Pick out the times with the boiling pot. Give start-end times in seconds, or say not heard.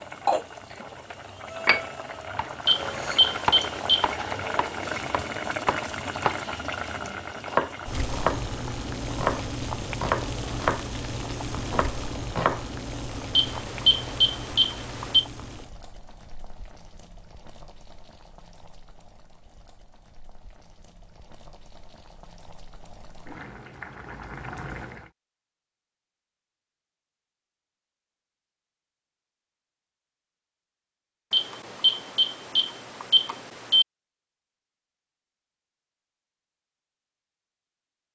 0.0-25.1.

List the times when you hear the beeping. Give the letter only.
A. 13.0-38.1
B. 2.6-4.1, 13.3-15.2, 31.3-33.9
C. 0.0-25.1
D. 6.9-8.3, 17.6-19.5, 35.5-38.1
B.